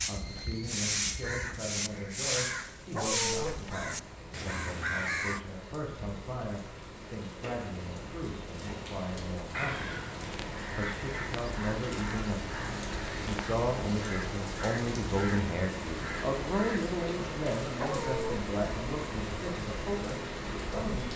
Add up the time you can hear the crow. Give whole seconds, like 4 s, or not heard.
13 s.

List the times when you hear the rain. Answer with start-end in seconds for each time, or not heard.
0.1-21.1.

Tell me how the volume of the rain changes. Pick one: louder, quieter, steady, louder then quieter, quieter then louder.
louder.